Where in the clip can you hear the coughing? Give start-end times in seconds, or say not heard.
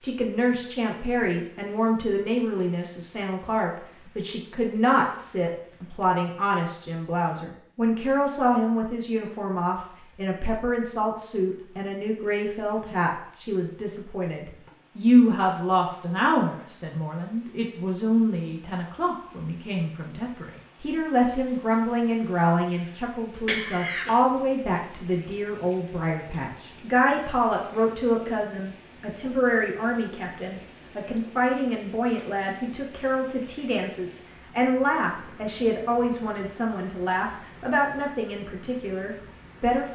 22.7-24.1.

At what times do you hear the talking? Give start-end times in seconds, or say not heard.
0.0-39.9.